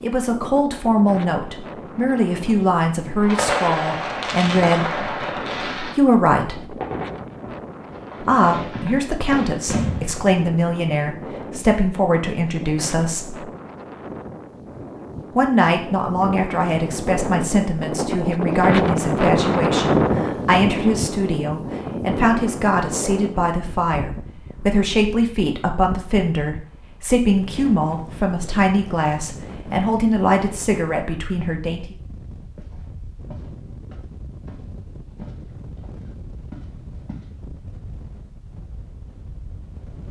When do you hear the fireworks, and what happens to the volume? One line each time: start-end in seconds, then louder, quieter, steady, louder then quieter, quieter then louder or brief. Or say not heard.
3.2-10.2 quieter then louder.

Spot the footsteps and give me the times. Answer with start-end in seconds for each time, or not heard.
32.5-37.3.